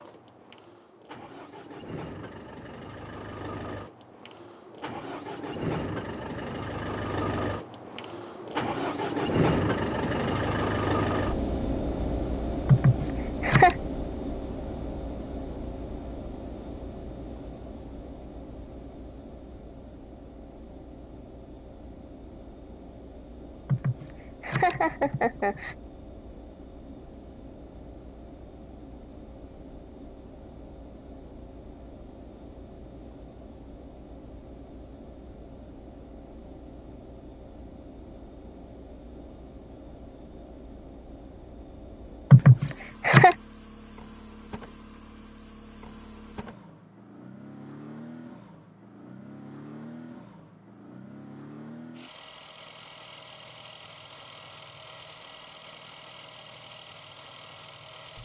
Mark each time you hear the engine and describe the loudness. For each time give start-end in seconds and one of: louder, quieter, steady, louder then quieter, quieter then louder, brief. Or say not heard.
0.0-58.1 quieter.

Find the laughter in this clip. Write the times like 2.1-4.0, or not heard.
12.7-13.8, 23.6-25.8, 42.3-43.4.